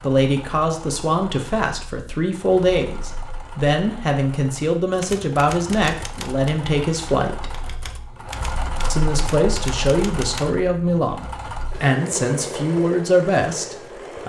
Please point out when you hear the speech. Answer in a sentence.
The speech can be heard from 0.0 to 7.5 s and from 8.9 to 14.2 s.